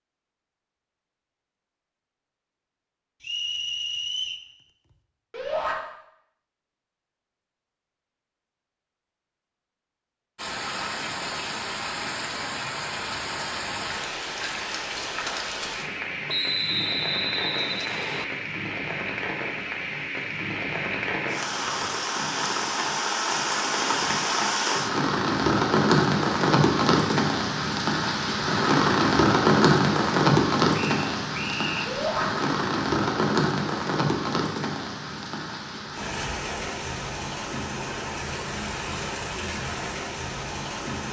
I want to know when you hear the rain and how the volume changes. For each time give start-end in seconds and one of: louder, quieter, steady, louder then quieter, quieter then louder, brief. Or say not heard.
10.3-41.0 louder then quieter.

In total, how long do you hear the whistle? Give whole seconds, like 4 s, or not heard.
4 s.